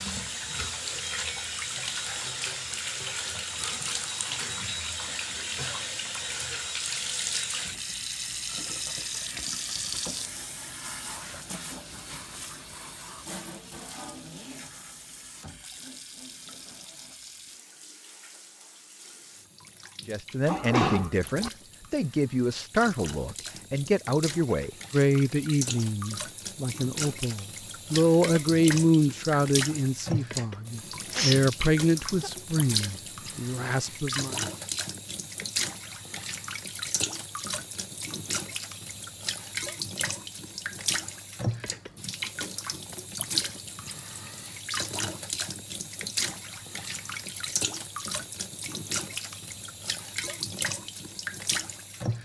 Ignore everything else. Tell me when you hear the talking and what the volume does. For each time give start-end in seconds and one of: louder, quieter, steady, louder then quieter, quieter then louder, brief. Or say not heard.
20.1-34.4 steady.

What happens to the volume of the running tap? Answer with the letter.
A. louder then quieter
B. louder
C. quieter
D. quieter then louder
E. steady
D.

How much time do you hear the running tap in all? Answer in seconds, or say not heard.
52 s.